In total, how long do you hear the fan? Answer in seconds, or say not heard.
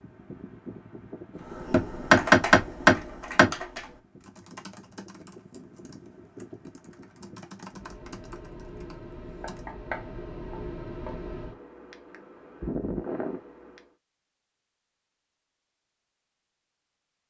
14 s.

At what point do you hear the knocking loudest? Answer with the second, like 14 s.
2 s.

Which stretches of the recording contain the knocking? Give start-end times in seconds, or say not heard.
1.7-3.5, 9.4-11.2.